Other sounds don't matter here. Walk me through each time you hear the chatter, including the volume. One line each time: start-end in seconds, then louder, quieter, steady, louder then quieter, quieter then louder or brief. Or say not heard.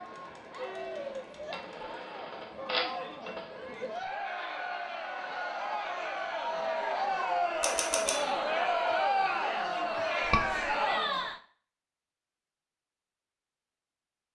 0.0-11.4 louder.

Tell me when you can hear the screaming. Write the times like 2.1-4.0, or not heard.
10.2-10.7.